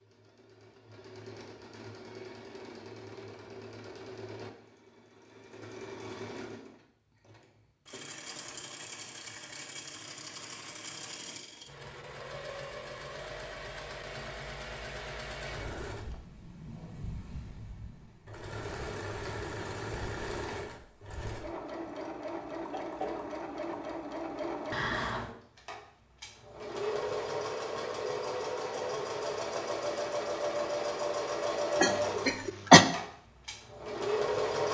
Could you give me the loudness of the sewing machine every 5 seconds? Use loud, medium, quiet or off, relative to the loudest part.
quiet, quiet, medium, medium, medium, loud, loud.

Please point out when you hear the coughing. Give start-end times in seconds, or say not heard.
31.8-32.9.